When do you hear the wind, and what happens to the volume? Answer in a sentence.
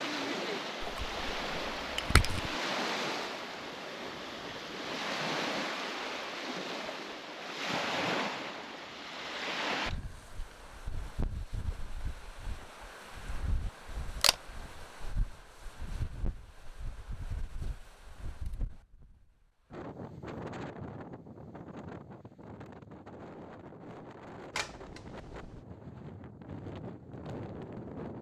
The wind can be heard from 0.0 to 28.1 s, getting quieter.